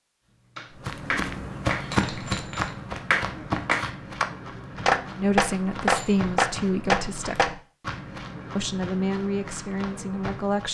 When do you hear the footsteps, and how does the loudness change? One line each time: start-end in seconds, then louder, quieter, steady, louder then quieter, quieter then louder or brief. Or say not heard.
0.8-10.6 quieter.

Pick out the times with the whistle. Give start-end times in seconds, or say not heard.
not heard.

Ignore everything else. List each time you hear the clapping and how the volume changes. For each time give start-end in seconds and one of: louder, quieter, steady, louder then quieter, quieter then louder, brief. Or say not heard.
0.6-7.5 louder.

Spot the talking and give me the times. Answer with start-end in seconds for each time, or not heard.
5.2-7.5, 8.6-10.6.